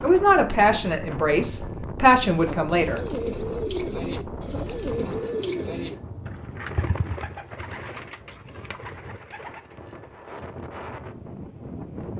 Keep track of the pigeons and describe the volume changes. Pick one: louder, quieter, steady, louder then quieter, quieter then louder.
quieter.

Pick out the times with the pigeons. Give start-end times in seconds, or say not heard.
2.3-9.9.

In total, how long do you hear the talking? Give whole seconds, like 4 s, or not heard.
3 s.